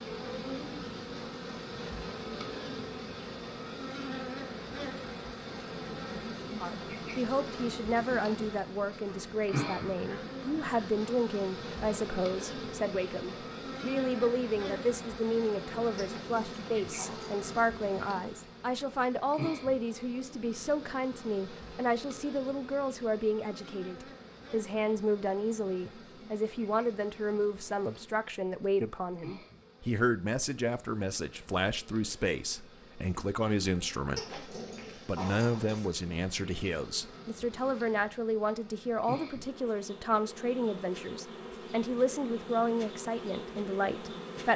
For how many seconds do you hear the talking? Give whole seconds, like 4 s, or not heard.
38 s.